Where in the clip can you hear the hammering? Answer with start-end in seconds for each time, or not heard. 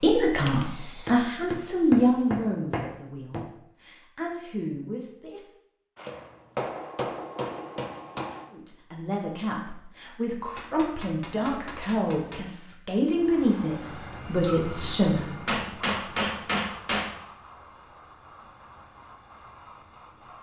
1.1-3.5, 6.0-8.4, 10.6-12.5, 15.4-17.1.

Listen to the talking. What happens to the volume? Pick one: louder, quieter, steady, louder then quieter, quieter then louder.
quieter then louder.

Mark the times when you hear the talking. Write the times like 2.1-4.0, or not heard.
0.0-5.5, 8.5-15.2.